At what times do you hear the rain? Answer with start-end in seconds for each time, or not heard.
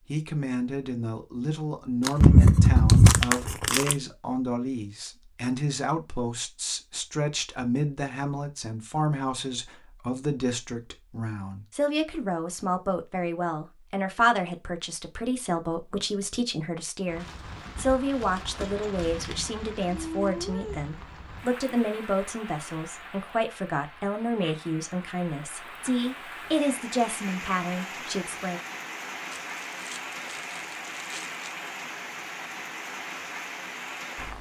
17.1-34.3.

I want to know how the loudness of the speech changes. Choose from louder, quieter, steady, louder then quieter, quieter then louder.
steady.